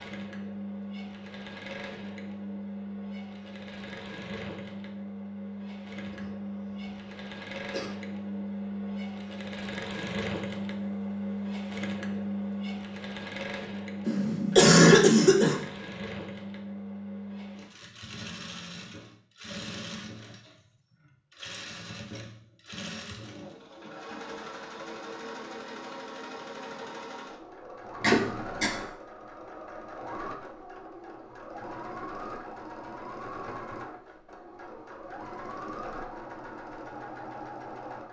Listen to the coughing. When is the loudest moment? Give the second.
15 s.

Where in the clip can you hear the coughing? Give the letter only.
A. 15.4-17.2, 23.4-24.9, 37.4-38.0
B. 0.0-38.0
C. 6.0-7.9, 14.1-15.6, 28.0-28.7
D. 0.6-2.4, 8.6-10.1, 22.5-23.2
C.